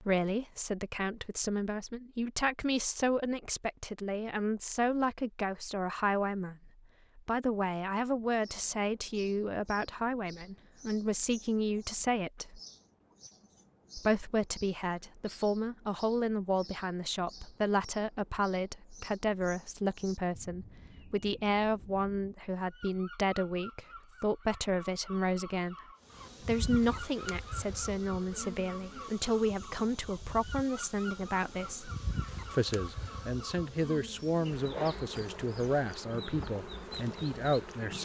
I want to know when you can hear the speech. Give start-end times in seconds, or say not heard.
0.0-12.6, 13.9-25.8, 26.4-31.9, 32.5-37.9.